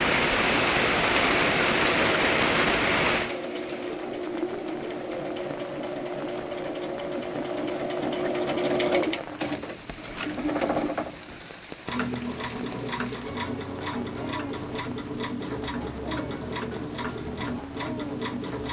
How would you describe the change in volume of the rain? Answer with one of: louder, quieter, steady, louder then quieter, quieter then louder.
quieter.